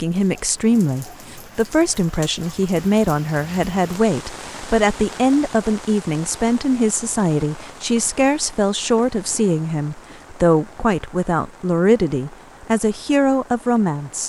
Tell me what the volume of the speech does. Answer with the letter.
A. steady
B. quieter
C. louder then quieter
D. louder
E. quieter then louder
A.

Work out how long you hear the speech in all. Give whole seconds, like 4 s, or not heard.
14 s.